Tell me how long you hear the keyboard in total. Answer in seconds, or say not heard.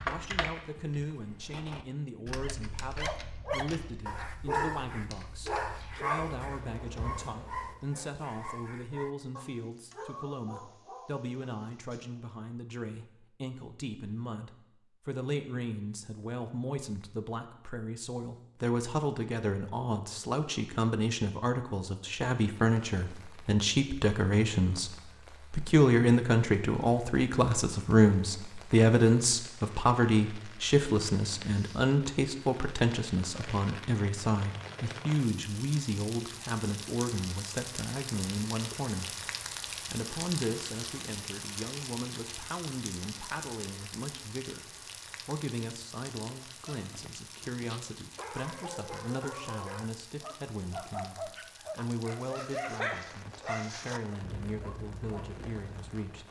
8 s.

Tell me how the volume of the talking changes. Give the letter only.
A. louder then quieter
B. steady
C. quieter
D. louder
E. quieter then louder
A.